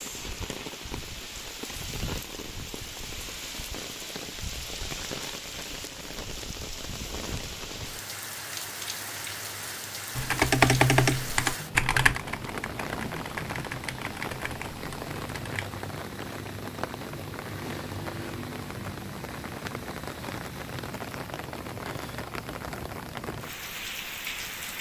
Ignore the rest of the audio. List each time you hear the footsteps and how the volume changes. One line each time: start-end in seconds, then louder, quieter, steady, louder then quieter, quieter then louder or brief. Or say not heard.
not heard.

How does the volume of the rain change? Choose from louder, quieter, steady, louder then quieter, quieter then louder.
steady.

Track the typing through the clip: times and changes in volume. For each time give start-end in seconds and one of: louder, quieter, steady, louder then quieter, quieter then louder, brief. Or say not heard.
10.2-15.7 quieter.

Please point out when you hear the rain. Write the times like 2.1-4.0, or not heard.
0.0-24.7.